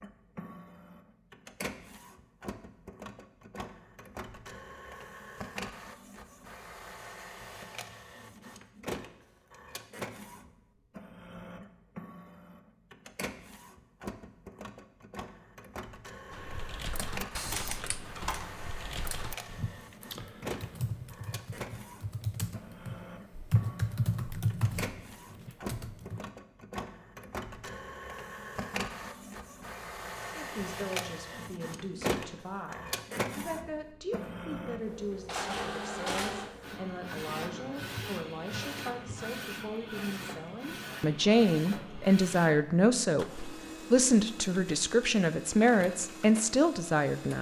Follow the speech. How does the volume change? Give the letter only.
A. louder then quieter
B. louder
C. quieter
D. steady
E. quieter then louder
B.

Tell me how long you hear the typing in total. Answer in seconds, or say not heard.
10 s.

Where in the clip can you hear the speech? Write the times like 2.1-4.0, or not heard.
30.3-47.3.